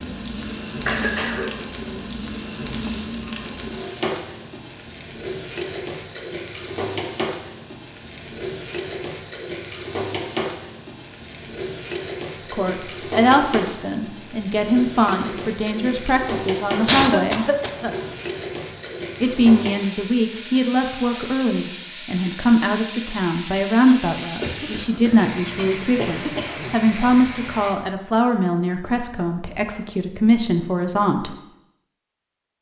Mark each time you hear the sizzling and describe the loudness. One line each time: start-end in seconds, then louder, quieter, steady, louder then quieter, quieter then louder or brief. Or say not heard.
0.0-27.8 steady.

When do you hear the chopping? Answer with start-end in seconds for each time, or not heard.
not heard.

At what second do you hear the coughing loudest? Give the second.
17 s.